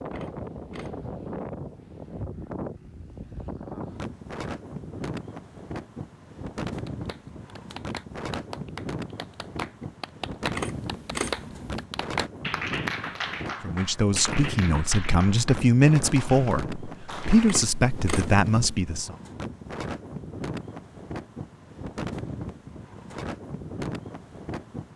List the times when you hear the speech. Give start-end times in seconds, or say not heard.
13.6-19.1.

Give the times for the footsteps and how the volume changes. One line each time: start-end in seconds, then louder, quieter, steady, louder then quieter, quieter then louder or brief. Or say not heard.
not heard.